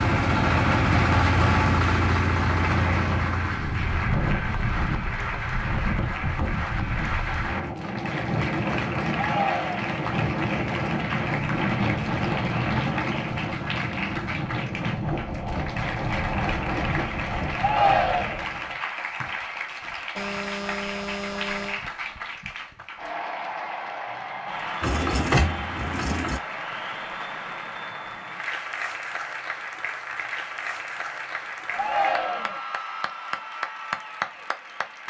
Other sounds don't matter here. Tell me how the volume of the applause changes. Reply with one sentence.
The loudness of the applause stays about the same.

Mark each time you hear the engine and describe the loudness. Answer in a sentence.
The engine can be heard from 0.0 to 7.8 s, getting quieter; and briefly from 24.8 to 26.4 s.